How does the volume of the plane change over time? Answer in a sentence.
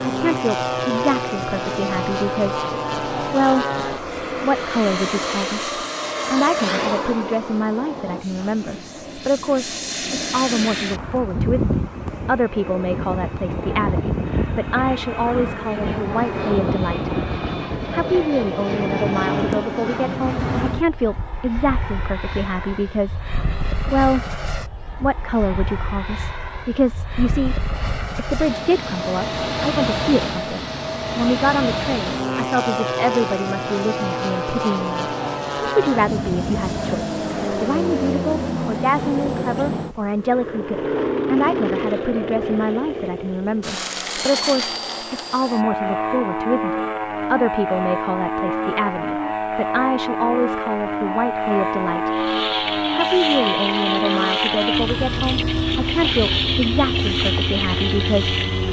The volume of the plane stays about the same.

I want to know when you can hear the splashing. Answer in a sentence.
You can hear the splashing from 52.1 to 58.6 s.